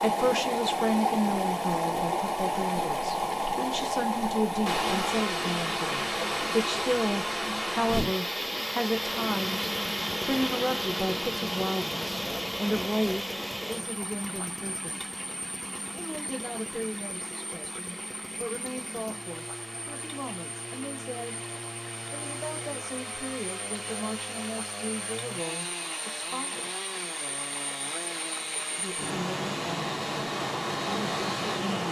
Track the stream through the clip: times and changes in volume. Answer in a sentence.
You can hear the stream from 0.0 to 31.8 s, getting quieter then louder.